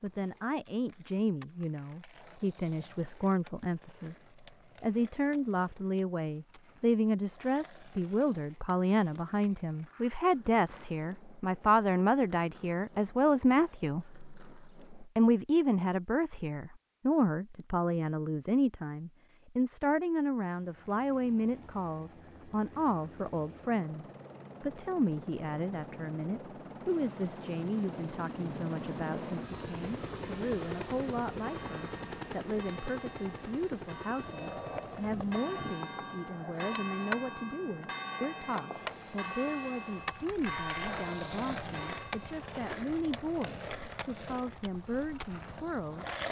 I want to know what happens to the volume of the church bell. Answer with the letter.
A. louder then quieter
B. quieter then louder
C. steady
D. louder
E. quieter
D.